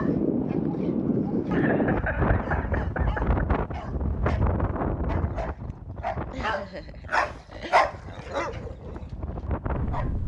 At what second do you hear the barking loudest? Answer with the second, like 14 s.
8 s.